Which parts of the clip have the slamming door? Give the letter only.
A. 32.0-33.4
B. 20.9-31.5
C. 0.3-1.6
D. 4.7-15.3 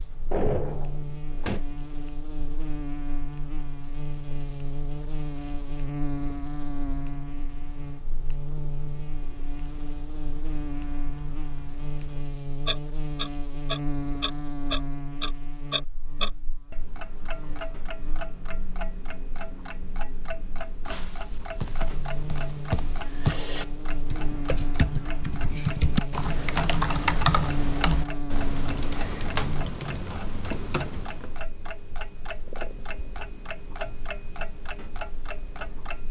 C.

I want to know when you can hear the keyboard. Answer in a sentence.
The keyboard can be heard from 20.9 to 31.5 s.